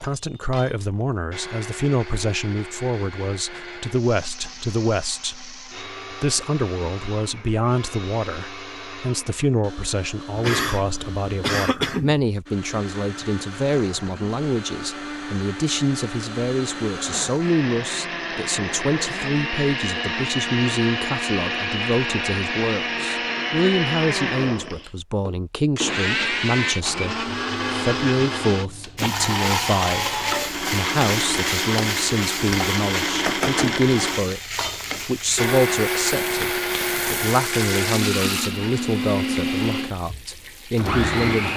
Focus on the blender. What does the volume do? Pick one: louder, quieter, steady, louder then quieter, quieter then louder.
louder.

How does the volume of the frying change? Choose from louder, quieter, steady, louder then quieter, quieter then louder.
quieter.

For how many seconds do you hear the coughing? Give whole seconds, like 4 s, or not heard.
2 s.